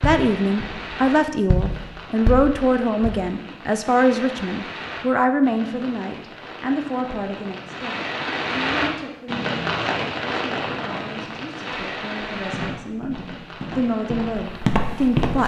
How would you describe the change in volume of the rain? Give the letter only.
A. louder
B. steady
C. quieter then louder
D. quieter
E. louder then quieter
E.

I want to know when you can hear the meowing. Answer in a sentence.
You can't hear the meowing here.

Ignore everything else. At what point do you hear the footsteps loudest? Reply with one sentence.
The loudest moment of the footsteps is at 15 seconds.